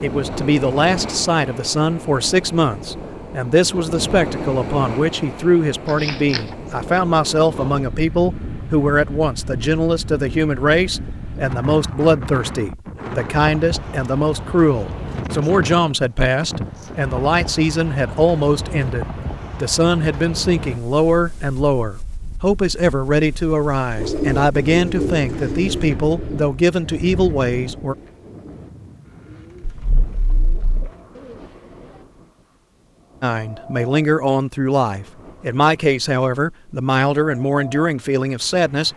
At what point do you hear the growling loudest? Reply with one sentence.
The volume of the growling peaks at 6 seconds.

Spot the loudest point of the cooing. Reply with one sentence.
The volume of the cooing peaks at 24 seconds.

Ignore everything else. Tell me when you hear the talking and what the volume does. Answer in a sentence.
You can hear the talking from 0.0 to 27.9 s, at a steady volume; and from 33.2 to 38.9 s, at a steady volume.